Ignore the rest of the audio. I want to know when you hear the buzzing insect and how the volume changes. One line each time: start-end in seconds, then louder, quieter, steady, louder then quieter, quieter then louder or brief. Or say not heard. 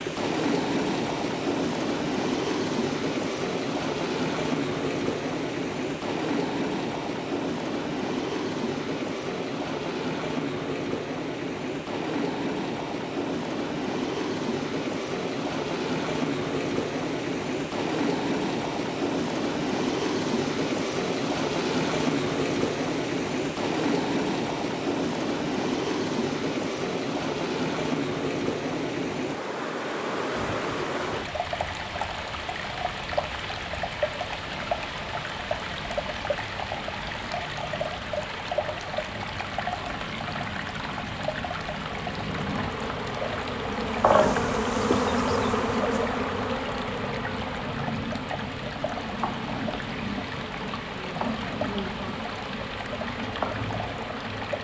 41.8-54.6 quieter.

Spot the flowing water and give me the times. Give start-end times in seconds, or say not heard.
0.0-54.6.